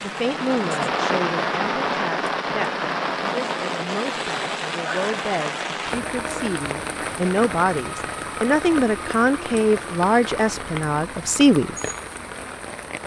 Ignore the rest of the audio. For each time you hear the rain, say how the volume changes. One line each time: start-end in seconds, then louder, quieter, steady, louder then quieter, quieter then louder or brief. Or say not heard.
0.0-13.0 quieter.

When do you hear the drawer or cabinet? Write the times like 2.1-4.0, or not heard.
not heard.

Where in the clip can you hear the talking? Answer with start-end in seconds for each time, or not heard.
0.0-11.8.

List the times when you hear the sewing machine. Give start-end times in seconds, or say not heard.
not heard.